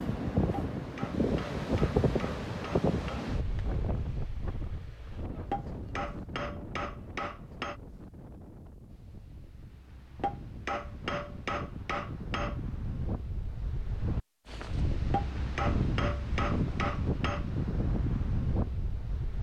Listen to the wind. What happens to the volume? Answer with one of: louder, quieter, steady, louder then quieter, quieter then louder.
quieter then louder.